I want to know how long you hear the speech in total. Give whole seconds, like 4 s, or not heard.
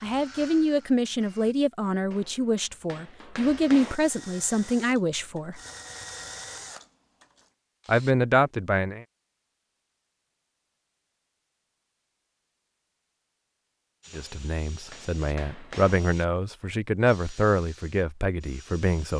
12 s.